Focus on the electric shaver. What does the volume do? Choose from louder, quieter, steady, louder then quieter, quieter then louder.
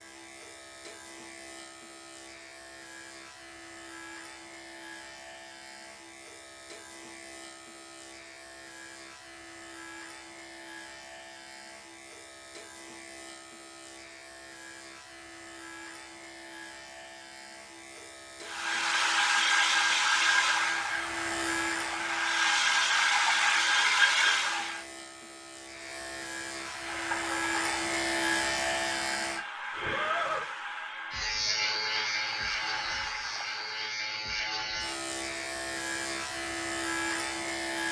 louder.